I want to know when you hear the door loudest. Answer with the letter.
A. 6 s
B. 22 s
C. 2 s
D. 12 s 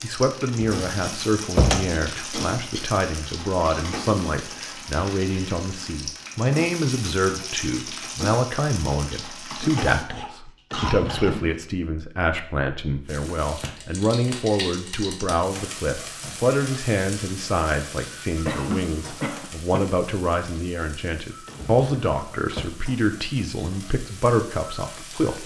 C.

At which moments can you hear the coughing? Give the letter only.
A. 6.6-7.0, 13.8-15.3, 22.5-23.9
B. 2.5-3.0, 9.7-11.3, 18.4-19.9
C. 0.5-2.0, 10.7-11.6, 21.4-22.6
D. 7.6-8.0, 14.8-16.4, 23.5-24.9
B.